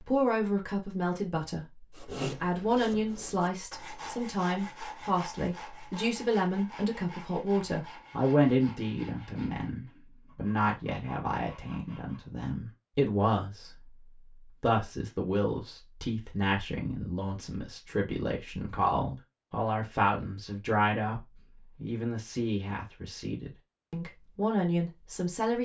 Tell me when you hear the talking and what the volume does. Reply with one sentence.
The talking can be heard from 0.0 to 25.6 s, at a steady volume.